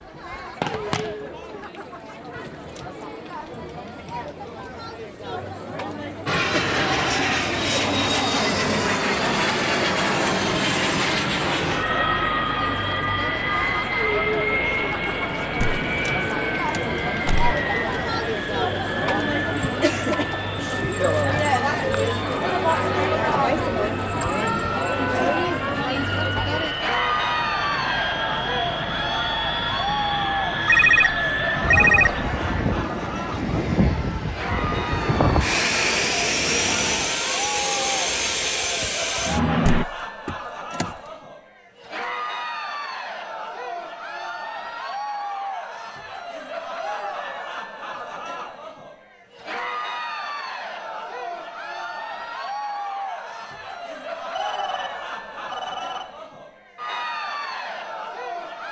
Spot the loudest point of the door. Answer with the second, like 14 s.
40 s.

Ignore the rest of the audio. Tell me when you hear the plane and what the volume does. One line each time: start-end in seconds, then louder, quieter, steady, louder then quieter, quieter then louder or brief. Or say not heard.
6.2-39.9 quieter then louder.